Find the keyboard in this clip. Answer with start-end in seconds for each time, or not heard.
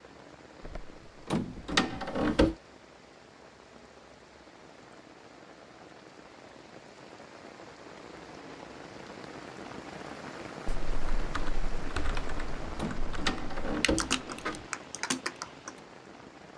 10.7-15.8.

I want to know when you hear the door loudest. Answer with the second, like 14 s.
2 s.